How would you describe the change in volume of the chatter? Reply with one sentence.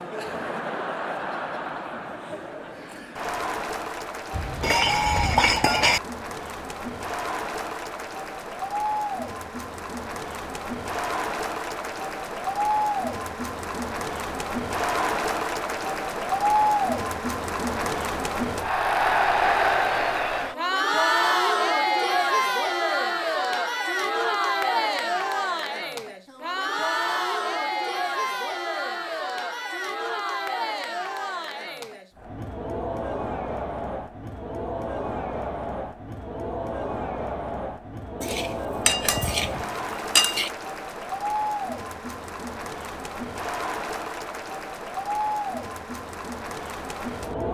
The loudness of the chatter goes up, then down.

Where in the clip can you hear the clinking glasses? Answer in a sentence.
You can hear the clinking glasses from 4.3 to 6.0 s and from 38.2 to 40.5 s.